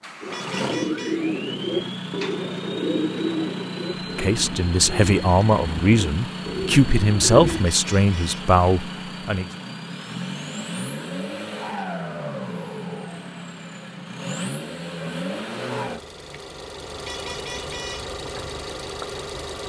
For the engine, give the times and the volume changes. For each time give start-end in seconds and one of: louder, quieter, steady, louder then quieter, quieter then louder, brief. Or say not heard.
0.0-19.6 steady.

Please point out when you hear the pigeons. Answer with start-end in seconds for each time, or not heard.
0.2-7.7.